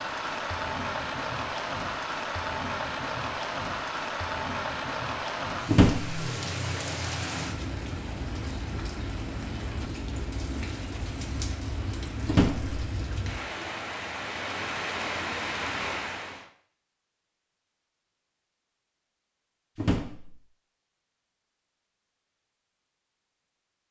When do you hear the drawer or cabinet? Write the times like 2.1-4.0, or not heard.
5.7-6.2, 12.2-12.7, 19.8-20.4.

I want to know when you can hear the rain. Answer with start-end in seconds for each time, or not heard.
0.0-16.5.